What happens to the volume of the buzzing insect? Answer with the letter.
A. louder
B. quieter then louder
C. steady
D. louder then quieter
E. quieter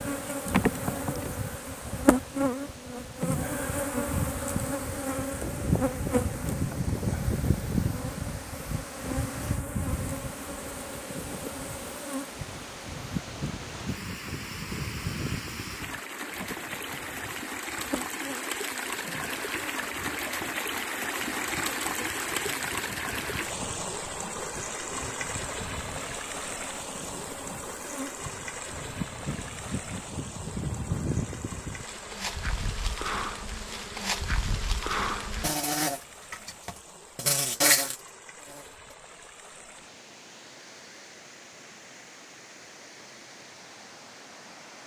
B.